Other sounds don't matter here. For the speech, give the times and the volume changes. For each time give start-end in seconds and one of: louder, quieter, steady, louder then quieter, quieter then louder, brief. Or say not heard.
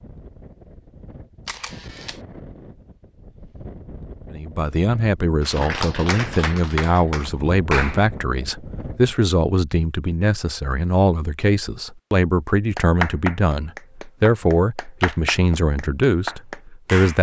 4.3-17.1 steady.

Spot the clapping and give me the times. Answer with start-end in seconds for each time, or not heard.
5.4-8.2, 12.8-17.1.